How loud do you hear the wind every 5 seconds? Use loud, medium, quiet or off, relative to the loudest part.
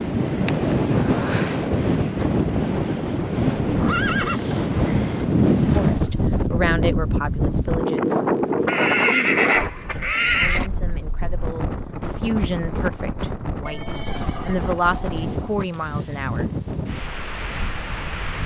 loud, loud, medium, medium.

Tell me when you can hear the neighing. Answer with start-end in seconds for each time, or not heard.
3.6-4.5, 8.7-10.7, 13.7-15.7.